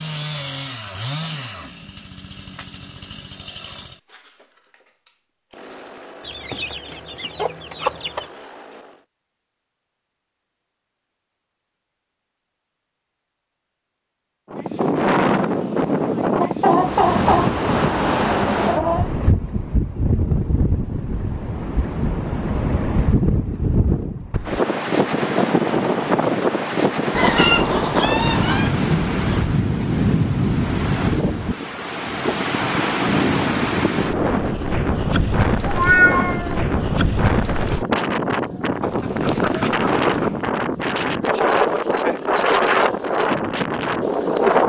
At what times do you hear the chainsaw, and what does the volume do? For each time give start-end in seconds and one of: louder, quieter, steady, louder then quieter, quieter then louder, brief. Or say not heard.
0.0-9.1 quieter.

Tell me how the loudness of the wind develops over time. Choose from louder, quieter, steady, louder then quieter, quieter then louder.
steady.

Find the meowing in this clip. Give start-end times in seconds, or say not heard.
35.6-36.6.